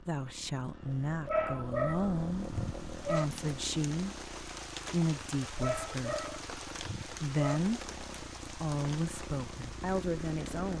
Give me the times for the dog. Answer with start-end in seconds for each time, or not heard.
1.2-3.2, 5.5-7.6.